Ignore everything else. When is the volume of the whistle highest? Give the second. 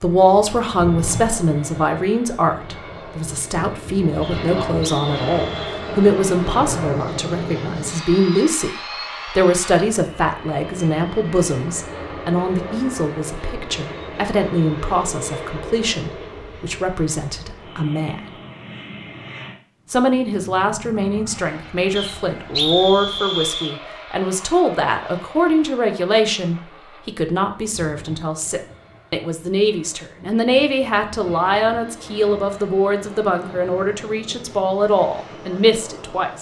23 s.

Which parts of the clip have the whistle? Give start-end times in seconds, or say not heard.
4.2-5.8, 21.9-23.8.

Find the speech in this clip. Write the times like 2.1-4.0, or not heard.
0.0-18.2, 19.9-36.3.